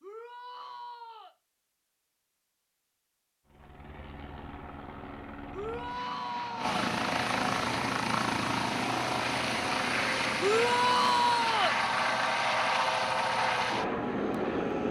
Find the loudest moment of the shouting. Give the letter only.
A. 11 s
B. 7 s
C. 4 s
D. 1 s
A.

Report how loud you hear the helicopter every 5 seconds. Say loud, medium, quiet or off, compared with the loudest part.
quiet, loud, loud.